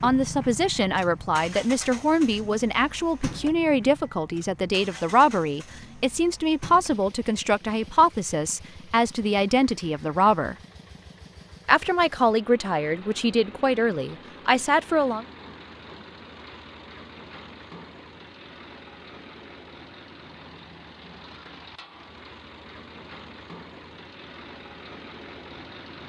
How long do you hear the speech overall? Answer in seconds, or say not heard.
14 s.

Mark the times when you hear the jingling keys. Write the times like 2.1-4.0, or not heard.
not heard.